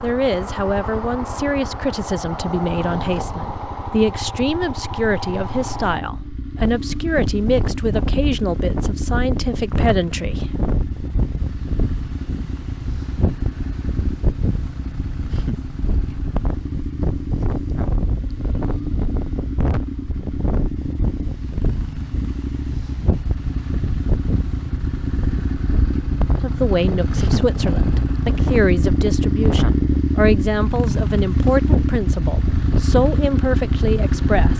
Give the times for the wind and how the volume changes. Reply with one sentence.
The wind can be heard from 6.5 to 34.5 s, at a steady volume.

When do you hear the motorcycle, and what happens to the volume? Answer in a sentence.
The motorcycle can be heard from 0.0 to 34.5 s, getting louder.